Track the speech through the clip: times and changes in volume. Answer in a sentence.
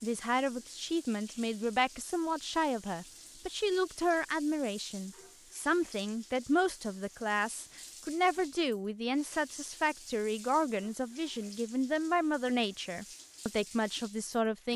You can hear the speech from 0.0 to 14.7 s, at a steady volume.